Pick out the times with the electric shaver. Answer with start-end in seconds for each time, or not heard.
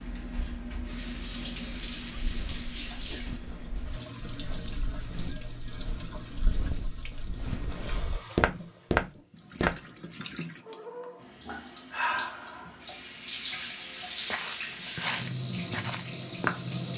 not heard.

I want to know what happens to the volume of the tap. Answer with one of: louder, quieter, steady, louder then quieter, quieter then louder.
quieter then louder.